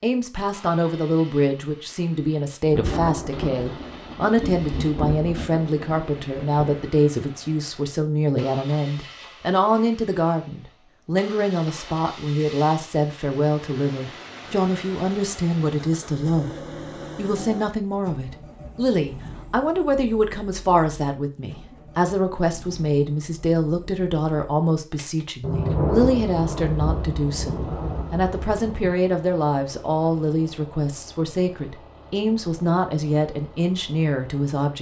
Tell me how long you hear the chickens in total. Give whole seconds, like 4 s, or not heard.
not heard.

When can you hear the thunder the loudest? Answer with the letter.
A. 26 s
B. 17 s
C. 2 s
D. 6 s
A.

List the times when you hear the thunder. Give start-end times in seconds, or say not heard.
2.7-6.7, 25.4-28.9.